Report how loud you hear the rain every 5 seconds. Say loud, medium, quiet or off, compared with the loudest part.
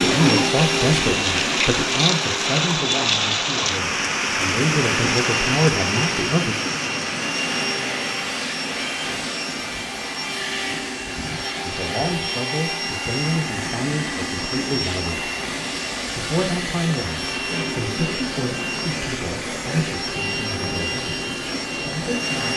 loud, medium, quiet, quiet, quiet.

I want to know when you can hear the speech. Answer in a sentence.
You can hear the speech from 0.0 to 6.5 s, from 11.7 to 15.3 s and from 16.1 to 22.5 s.